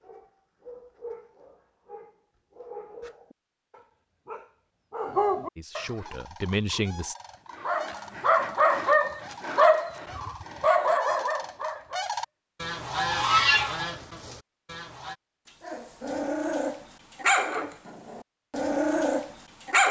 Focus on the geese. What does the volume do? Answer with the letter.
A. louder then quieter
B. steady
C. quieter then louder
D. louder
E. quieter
D.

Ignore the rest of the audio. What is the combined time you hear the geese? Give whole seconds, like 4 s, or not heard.
9 s.